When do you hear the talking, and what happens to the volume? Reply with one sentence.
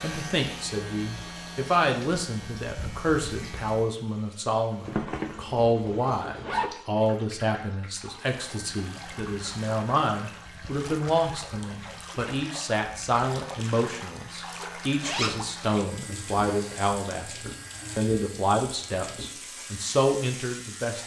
You can hear the talking from 0.0 to 21.0 s, at a steady volume.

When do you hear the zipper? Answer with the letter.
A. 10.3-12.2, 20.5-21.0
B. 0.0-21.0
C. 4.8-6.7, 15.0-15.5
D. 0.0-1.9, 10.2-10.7
C.